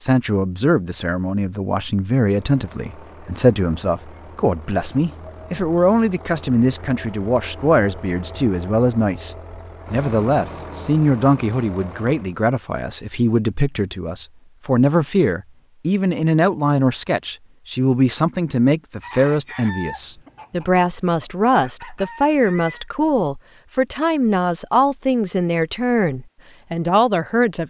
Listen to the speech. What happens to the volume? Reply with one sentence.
The volume of the speech stays about the same.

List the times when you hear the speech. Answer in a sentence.
You can hear the speech from 0.0 to 27.6 s.